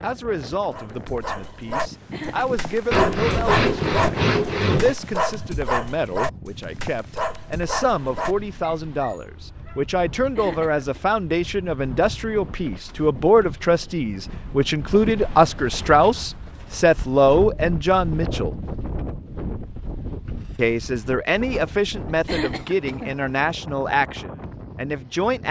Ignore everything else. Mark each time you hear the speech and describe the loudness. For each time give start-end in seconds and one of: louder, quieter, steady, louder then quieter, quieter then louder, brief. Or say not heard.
0.0-18.6 louder
20.6-25.4 quieter.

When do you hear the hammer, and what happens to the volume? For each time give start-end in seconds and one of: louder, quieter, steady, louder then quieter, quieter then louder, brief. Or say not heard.
not heard.